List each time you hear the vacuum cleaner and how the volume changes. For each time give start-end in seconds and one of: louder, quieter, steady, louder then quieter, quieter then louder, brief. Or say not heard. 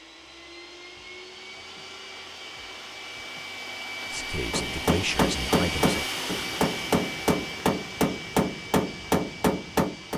0.0-10.1 louder then quieter.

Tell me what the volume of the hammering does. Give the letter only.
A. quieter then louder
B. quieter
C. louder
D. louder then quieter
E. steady
E.